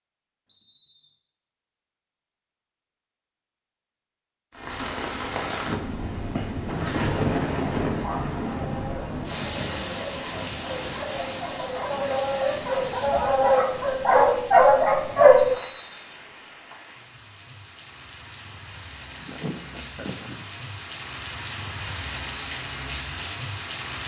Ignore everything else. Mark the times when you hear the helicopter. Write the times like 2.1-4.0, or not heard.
not heard.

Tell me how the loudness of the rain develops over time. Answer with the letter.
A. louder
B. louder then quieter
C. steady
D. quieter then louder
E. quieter
D.